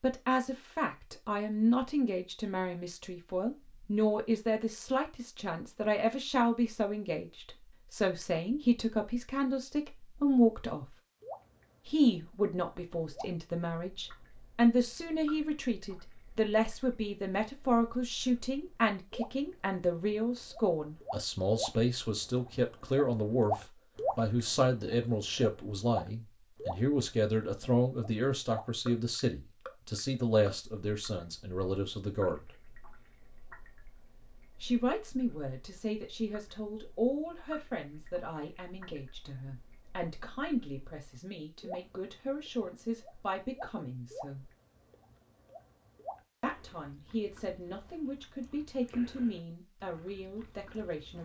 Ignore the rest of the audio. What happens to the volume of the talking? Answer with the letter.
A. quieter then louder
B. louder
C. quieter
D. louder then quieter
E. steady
C.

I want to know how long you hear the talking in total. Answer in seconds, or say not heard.
46 s.